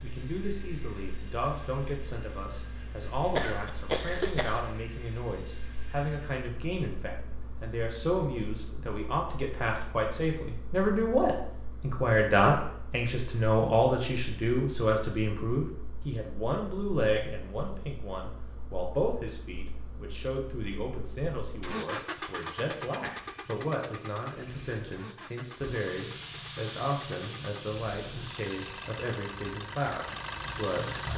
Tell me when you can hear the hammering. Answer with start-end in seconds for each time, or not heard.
not heard.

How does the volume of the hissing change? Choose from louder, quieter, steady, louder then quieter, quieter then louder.
quieter.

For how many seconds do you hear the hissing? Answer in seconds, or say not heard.
6 s.